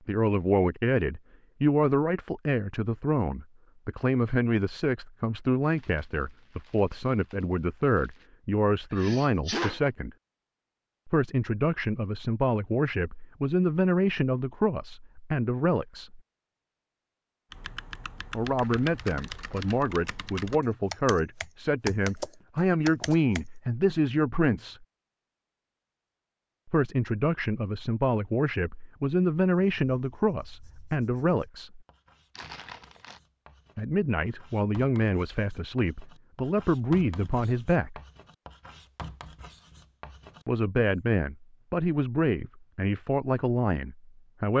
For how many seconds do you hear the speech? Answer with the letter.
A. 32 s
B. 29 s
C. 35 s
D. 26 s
C.